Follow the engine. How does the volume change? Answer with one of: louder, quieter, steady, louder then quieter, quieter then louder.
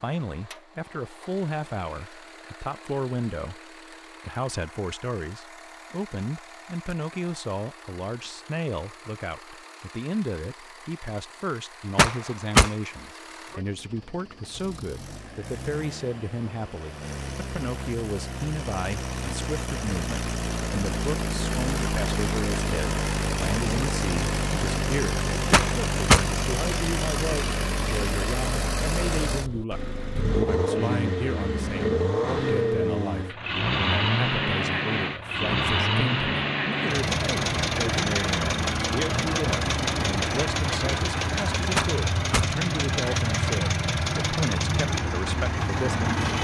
louder.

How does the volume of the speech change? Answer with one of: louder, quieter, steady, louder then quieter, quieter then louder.
steady.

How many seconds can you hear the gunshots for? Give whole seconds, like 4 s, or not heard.
2 s.